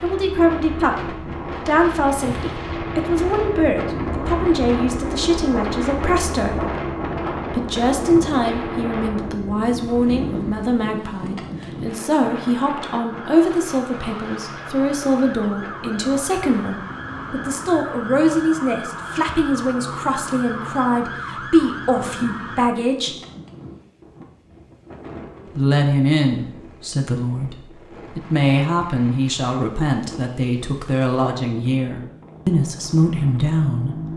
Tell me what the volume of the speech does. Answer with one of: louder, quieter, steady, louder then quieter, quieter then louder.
steady.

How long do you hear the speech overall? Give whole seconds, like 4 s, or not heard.
31 s.